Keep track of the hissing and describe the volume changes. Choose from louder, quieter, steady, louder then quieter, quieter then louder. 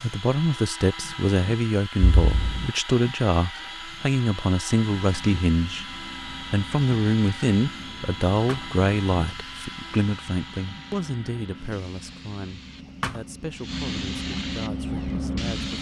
louder.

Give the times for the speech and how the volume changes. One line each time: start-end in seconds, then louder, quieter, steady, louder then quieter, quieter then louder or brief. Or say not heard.
0.0-15.7 quieter.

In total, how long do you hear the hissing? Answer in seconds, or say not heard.
11 s.